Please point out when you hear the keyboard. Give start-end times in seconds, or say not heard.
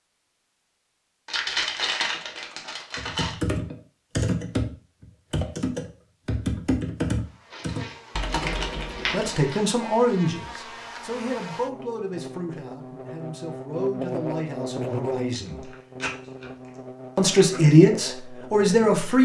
3.0-9.4.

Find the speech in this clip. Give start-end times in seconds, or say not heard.
9.1-15.7, 17.1-19.1.